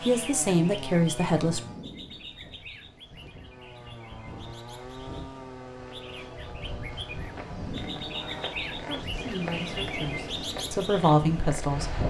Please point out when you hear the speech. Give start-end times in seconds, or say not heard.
0.0-1.6, 8.8-12.0.